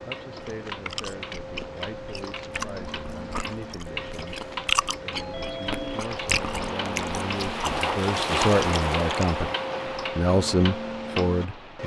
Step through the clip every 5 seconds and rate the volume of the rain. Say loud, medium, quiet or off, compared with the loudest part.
quiet, loud, medium.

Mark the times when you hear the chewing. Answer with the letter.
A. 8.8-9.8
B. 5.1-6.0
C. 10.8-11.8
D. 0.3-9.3
D.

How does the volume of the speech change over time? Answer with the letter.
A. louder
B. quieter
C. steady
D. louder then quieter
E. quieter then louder
A.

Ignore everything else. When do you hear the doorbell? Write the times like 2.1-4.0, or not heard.
5.1-6.0.